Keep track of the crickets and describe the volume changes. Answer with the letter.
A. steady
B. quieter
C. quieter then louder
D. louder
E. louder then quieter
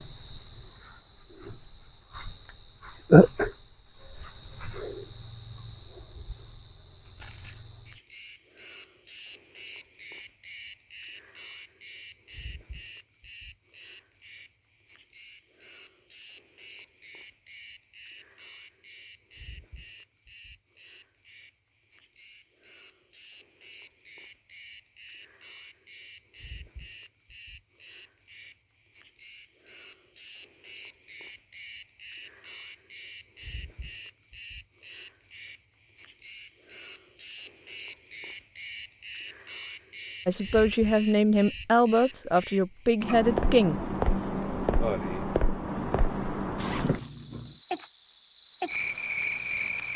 C.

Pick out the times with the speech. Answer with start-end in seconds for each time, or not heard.
40.2-43.8.